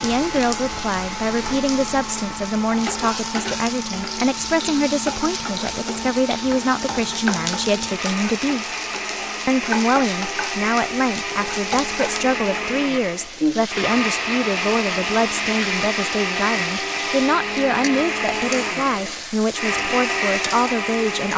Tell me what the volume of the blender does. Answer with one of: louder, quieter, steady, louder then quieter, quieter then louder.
louder.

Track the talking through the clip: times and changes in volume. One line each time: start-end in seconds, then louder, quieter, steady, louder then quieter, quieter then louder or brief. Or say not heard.
0.0-8.7 steady
9.4-21.3 steady.